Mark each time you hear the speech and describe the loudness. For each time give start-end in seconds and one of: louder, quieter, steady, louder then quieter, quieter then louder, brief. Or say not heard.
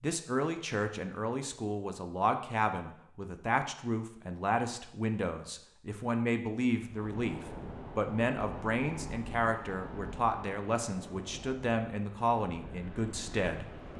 0.0-13.7 steady.